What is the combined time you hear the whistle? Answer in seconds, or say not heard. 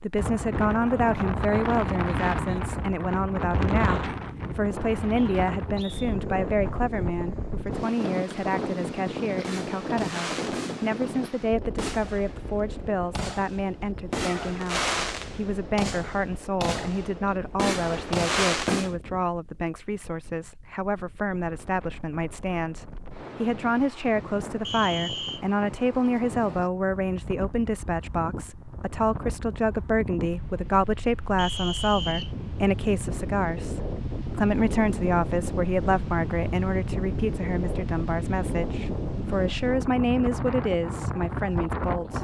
3 s.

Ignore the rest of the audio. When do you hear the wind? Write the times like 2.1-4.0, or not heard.
0.0-42.1.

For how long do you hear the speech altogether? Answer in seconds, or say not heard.
42 s.